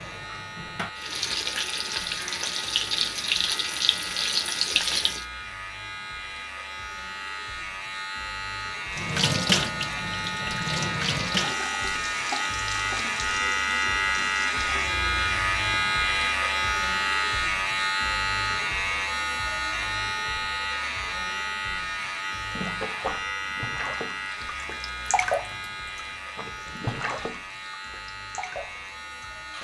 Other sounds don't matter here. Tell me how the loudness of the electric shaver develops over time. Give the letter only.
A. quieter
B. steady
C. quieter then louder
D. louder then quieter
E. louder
D.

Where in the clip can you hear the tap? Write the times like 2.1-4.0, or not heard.
0.0-5.2, 8.9-15.7, 22.5-29.5.